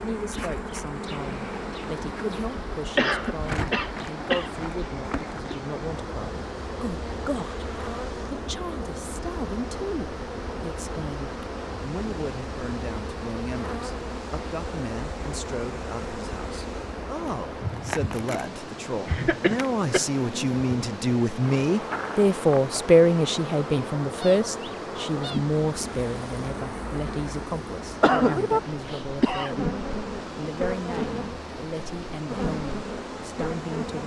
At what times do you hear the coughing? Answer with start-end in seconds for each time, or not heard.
3.0-4.5, 19.1-20.1, 28.0-29.6.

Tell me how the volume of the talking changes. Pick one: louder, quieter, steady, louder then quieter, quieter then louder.
louder then quieter.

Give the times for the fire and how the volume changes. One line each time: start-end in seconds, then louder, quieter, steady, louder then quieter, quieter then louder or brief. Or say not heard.
not heard.